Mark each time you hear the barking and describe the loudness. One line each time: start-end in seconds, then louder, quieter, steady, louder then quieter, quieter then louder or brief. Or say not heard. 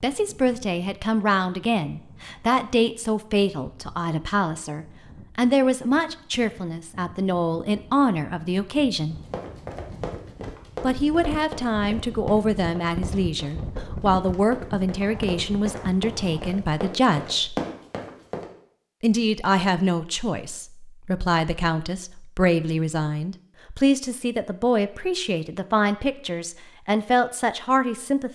not heard.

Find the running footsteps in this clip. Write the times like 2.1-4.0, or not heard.
9.1-18.4.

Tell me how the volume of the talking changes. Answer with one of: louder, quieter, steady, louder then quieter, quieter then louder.
steady.